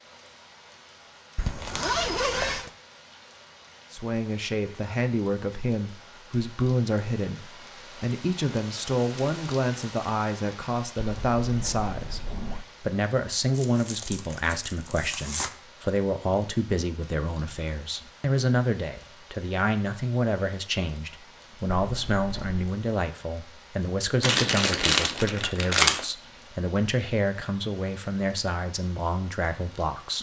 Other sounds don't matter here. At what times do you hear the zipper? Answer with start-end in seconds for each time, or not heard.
1.4-2.7, 10.9-12.7, 21.8-22.8.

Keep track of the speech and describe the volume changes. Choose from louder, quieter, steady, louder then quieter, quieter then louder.
steady.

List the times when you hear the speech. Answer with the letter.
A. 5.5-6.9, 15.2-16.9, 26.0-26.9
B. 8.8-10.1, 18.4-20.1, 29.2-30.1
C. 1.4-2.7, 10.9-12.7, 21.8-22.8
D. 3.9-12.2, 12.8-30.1
D.